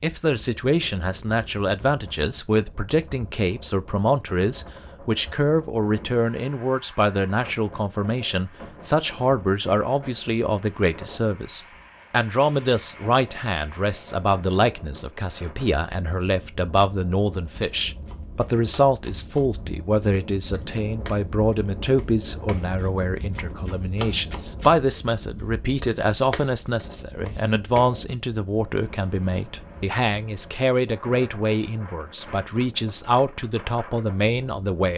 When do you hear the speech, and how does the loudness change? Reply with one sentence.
You can hear the speech from 0.0 to 34.9 s, at a steady volume.